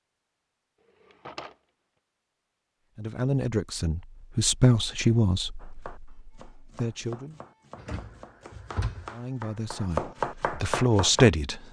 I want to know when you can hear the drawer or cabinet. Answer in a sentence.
You can hear the drawer or cabinet from 1.0 to 1.6 s and from 7.8 to 9.1 s.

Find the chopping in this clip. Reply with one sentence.
The chopping can be heard from 5.6 to 11.3 s.